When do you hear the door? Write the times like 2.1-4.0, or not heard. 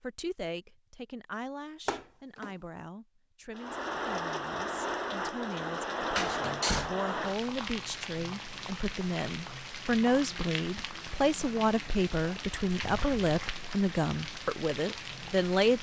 1.9-2.5, 6.2-6.9, 12.8-13.2.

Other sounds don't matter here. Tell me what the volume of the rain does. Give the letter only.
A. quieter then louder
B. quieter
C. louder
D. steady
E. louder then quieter
B.